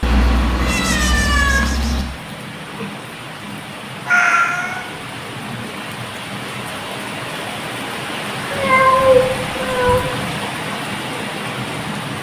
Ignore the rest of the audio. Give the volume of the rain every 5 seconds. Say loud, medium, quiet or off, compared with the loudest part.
medium, loud, loud.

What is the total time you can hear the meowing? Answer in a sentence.
The meowing can be heard for 4 seconds in total.